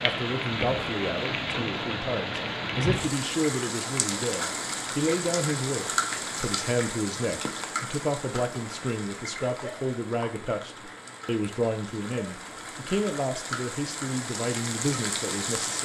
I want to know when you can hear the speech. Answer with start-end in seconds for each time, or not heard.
0.0-15.8.